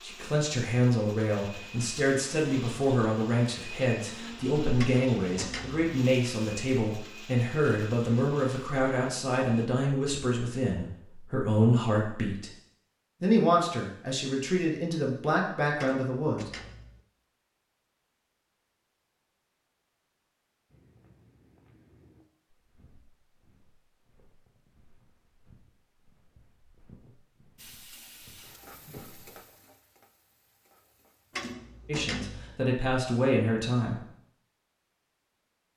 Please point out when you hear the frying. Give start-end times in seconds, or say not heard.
27.6-31.4.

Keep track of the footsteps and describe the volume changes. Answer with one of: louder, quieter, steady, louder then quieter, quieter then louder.
quieter then louder.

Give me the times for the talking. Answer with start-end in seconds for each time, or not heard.
0.0-12.5, 13.2-16.5, 31.9-34.0.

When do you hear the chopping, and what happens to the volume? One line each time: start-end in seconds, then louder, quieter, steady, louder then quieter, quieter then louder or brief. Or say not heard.
not heard.